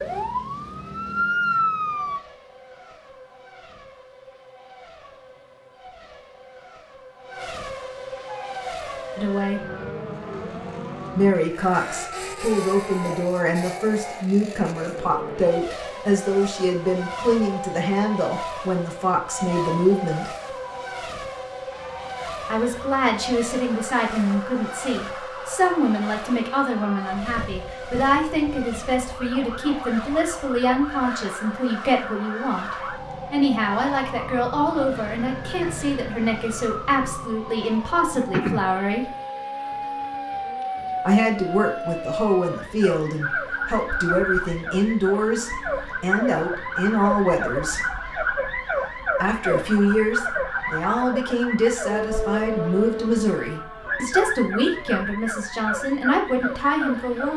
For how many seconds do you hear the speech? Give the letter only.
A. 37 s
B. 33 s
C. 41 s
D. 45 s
C.